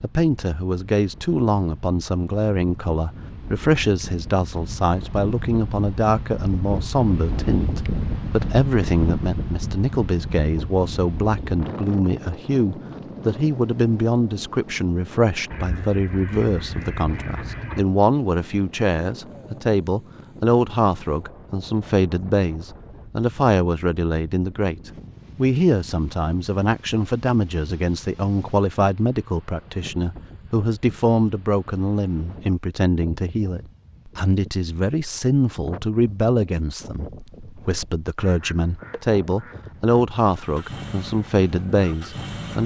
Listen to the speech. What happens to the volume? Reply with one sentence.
The loudness of the speech stays about the same.